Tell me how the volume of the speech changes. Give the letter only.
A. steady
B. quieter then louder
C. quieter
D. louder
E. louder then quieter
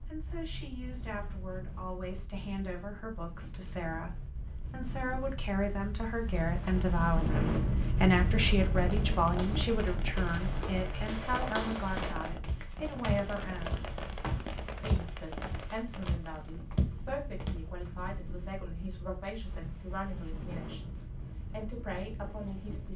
E.